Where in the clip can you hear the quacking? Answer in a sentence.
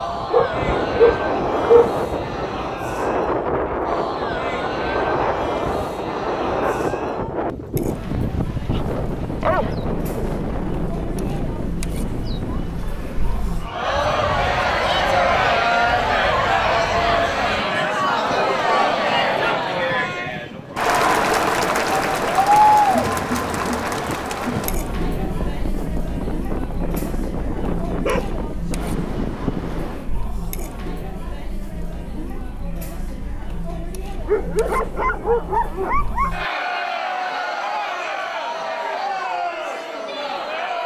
The quacking can't be heard in this clip.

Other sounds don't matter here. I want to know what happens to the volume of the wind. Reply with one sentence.
The volume of the wind goes down, then up.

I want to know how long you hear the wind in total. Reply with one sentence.
You can hear the wind for 30 seconds altogether.